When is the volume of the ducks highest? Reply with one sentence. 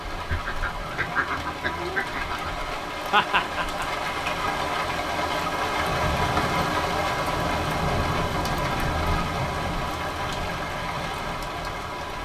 The volume of the ducks peaks at 1 second.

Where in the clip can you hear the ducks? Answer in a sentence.
The ducks can be heard from 0.1 to 2.5 s.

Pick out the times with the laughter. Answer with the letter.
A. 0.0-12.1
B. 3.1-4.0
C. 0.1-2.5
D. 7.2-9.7
B.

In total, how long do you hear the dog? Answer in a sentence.
The dog can't be heard in this clip.